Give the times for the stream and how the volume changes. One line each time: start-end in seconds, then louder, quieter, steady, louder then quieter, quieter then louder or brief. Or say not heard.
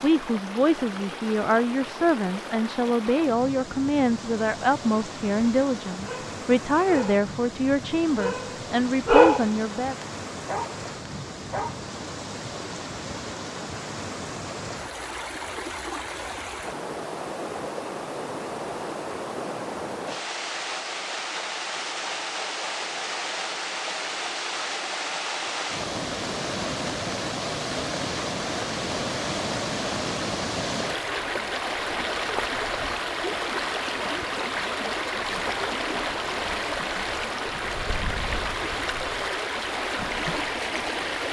0.0-41.2 louder.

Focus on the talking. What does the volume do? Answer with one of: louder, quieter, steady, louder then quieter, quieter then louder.
steady.